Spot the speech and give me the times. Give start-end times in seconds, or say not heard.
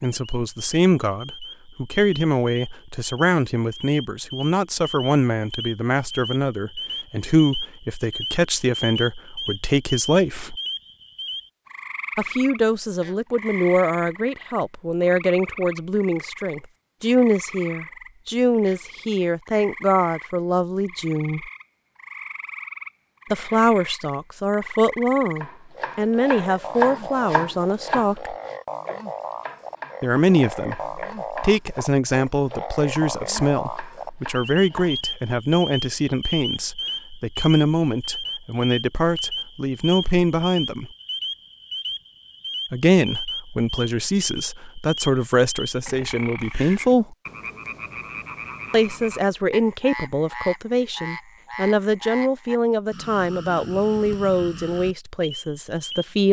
0.0-10.6, 12.2-21.4, 23.3-28.4, 30.0-40.9, 42.7-47.1, 48.7-56.2.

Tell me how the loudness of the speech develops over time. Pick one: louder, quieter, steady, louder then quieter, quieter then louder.
steady.